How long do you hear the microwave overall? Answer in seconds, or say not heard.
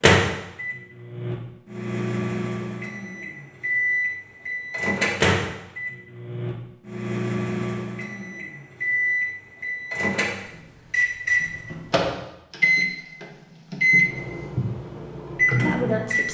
16 s.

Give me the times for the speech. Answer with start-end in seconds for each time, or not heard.
15.6-16.3.